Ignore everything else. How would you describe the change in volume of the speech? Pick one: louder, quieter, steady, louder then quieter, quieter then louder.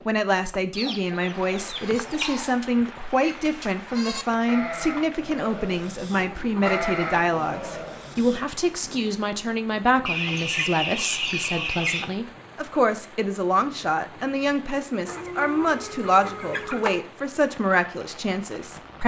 steady.